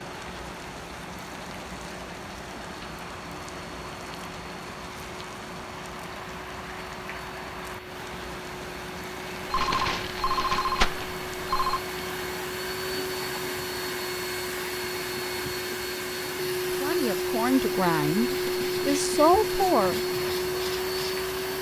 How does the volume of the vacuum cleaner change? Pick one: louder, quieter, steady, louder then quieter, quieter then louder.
louder.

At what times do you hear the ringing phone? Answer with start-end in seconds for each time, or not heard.
9.5-11.8.